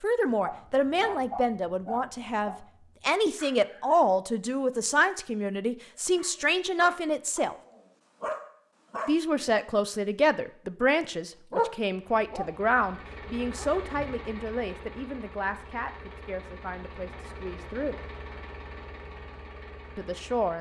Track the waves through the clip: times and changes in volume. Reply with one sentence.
You can't hear the waves here.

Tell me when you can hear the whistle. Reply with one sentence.
The whistle can't be heard in this clip.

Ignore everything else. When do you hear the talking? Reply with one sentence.
You can hear the talking from 0.0 to 7.5 s, from 9.1 to 18.0 s and from 19.9 to 20.5 s.